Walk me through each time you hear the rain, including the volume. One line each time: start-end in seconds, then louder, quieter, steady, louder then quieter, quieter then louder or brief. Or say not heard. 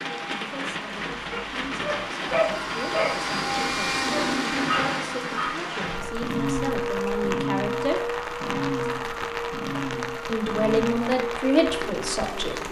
0.0-12.6 steady.